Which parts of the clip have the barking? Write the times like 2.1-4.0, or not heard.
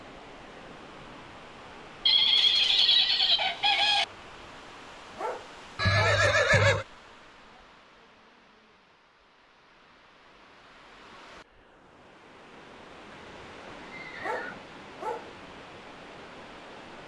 5.2-6.2, 14.2-15.3.